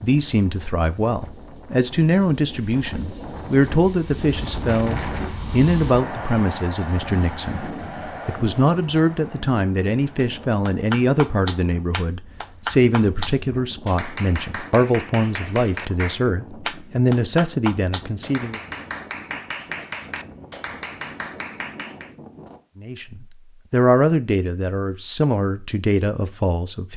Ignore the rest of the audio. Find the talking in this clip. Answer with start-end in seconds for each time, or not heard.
0.0-7.7, 8.2-18.6, 22.8-26.9.